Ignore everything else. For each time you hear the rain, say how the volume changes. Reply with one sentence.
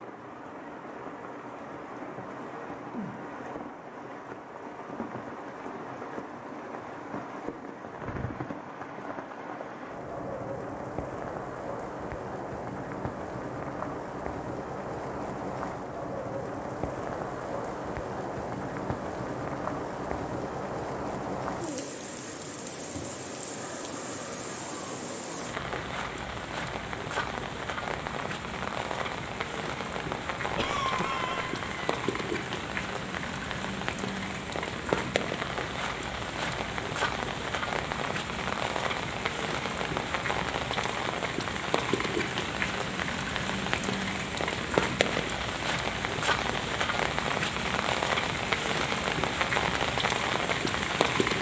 The rain can be heard from 0.0 to 51.3 s, getting louder.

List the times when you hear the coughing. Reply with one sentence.
You can hear the coughing from 30.6 to 31.9 s.